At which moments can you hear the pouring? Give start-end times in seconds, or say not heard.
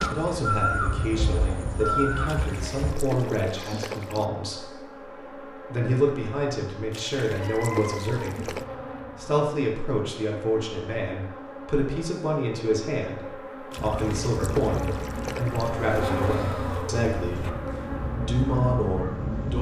2.2-4.2, 6.9-8.7, 13.7-15.7.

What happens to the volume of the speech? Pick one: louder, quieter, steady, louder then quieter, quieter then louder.
steady.